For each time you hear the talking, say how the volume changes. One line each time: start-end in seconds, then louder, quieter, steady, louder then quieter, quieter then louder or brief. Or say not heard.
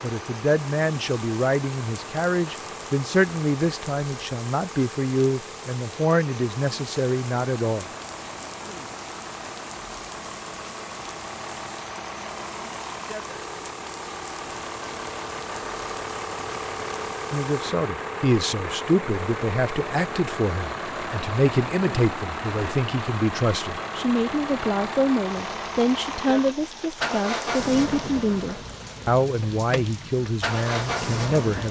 0.0-7.8 steady
17.3-31.6 steady.